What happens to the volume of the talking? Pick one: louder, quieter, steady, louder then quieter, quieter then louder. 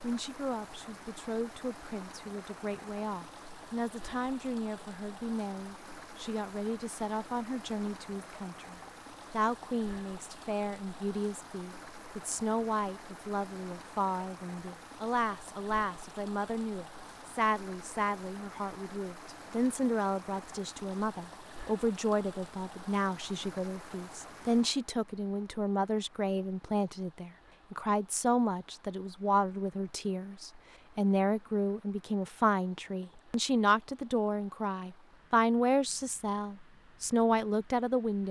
louder.